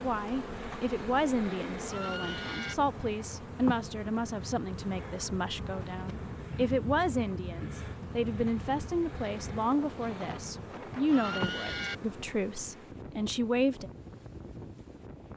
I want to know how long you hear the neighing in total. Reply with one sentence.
You can hear the neighing for 2 seconds altogether.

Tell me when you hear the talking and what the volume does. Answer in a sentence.
The talking can be heard from 0.0 to 13.9 s, at a steady volume.